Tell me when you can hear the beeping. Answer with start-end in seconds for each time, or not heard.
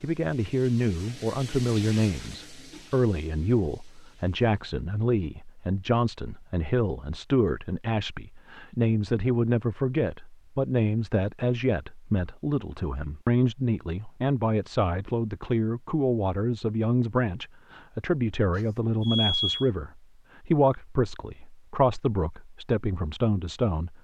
18.6-19.6.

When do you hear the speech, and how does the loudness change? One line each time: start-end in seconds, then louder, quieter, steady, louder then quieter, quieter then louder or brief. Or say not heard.
0.0-23.9 steady.